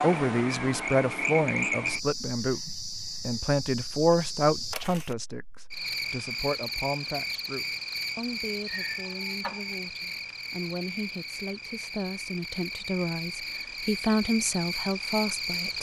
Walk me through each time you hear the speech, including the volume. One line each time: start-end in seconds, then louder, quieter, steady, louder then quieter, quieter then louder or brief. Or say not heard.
0.0-15.7 quieter then louder.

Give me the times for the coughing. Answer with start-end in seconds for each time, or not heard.
not heard.